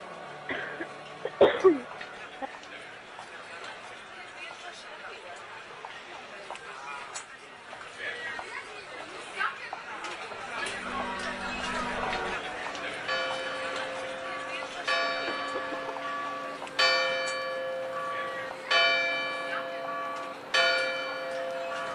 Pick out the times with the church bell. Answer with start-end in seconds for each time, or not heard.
10.6-21.9.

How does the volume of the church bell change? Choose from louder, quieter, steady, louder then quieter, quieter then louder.
louder.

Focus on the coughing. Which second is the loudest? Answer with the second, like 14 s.
2 s.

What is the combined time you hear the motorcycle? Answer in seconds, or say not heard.
not heard.